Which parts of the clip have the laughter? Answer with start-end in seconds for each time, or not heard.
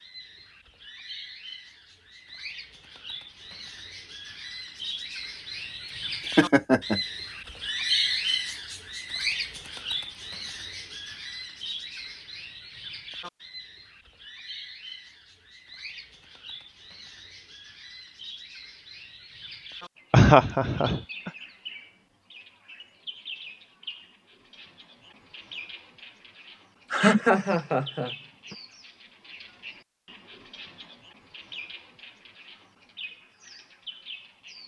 6.2-7.0, 20.1-21.3, 26.9-28.6.